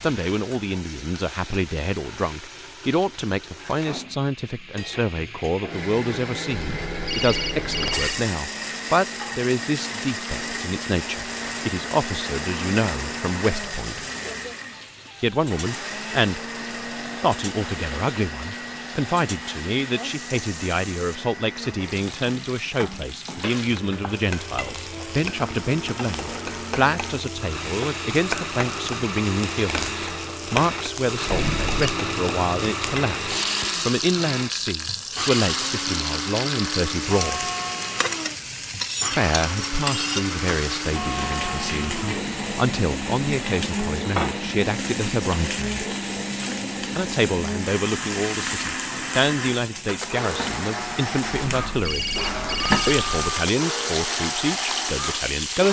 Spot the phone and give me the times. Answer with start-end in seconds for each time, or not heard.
6.5-8.2, 31.2-31.9, 51.5-53.0.